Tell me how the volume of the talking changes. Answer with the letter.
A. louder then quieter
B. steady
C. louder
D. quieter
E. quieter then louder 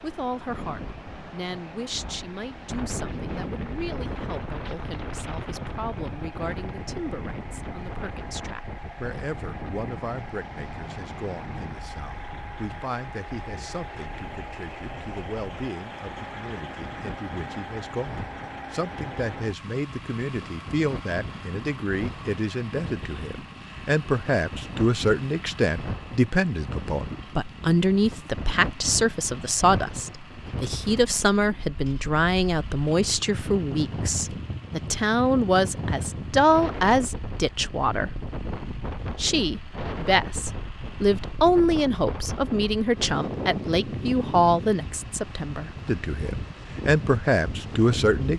C.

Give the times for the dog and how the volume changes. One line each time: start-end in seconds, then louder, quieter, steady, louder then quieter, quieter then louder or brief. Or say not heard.
not heard.